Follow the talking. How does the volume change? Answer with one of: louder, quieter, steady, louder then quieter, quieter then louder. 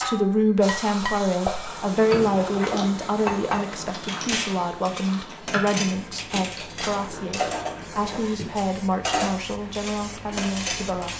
quieter.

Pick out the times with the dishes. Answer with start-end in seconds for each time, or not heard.
0.0-11.1.